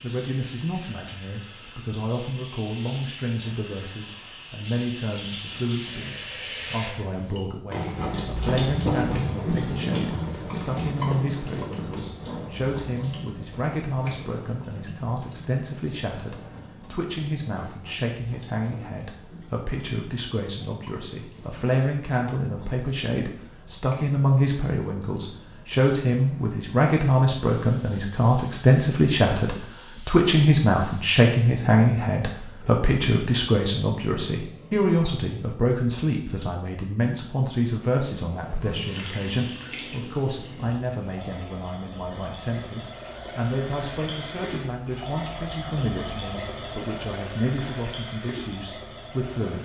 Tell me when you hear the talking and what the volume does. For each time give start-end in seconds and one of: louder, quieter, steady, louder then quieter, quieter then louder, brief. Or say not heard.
0.0-49.6 louder then quieter.